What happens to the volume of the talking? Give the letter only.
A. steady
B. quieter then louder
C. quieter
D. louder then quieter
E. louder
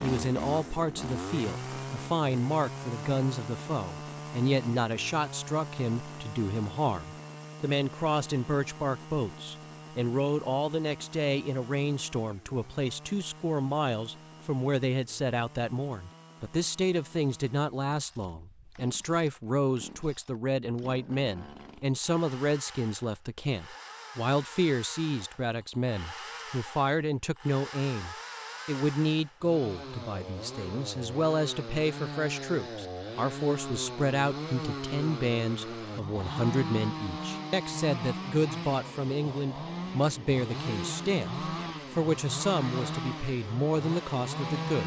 A.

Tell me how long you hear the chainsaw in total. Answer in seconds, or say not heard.
45 s.